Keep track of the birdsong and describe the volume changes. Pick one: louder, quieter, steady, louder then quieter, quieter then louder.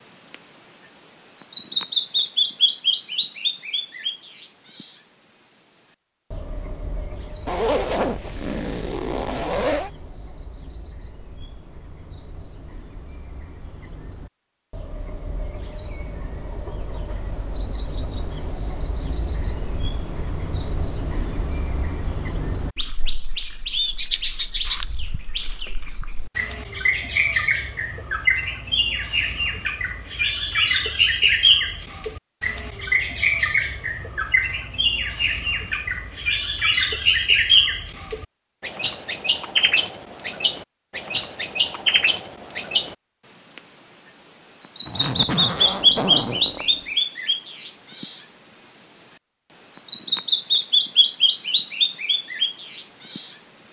quieter then louder.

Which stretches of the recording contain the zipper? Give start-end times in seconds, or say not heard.
7.5-9.9, 44.9-46.9.